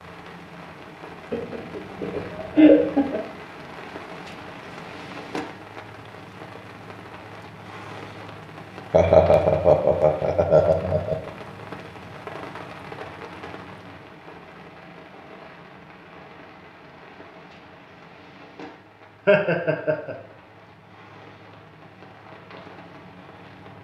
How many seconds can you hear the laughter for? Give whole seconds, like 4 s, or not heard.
5 s.